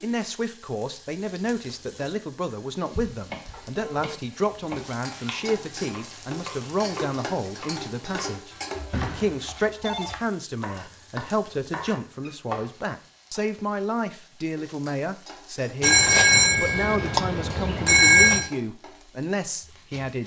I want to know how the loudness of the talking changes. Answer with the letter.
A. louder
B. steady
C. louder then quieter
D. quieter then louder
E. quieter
B.